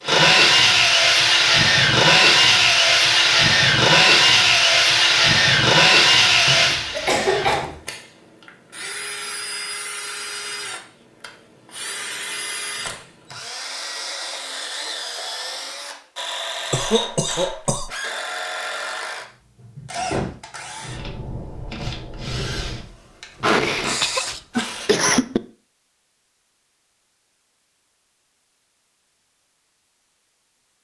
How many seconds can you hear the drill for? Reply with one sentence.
You can hear the drill for 25 seconds altogether.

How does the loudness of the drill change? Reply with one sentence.
The loudness of the drill goes down.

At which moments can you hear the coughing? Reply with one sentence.
You can hear the coughing from 6.5 to 7.8 s, from 16.7 to 17.9 s and from 23.4 to 25.4 s.